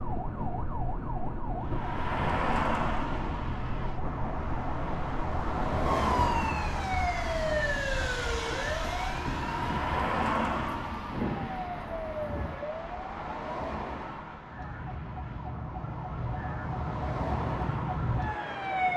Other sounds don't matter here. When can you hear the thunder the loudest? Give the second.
11 s.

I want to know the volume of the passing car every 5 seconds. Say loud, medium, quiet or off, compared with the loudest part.
loud, loud, loud, medium.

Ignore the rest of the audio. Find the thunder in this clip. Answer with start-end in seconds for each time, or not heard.
9.2-12.6.